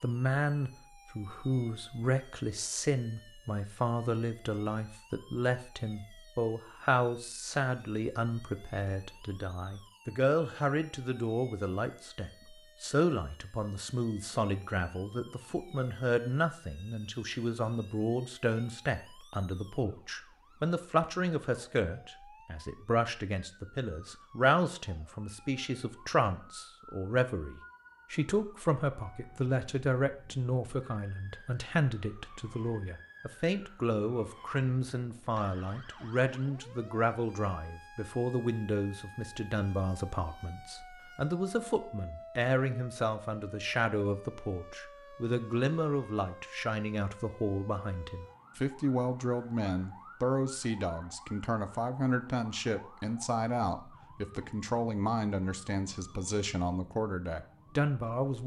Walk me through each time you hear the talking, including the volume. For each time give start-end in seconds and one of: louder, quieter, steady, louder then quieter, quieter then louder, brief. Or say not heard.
0.0-58.4 steady.